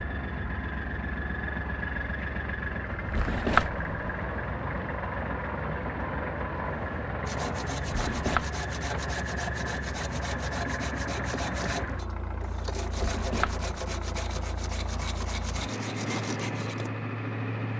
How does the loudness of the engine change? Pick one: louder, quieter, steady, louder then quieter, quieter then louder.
steady.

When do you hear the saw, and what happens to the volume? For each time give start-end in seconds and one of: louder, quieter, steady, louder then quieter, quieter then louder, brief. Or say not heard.
7.2-16.9 steady.